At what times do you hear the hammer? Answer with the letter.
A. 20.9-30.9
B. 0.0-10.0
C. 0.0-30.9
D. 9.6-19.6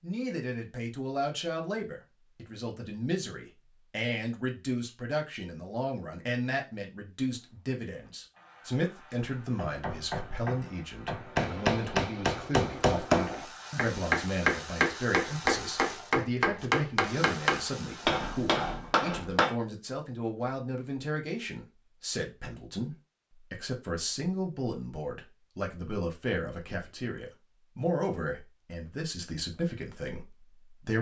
D.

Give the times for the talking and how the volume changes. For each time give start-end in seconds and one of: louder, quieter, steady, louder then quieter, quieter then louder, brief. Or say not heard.
0.0-30.9 steady.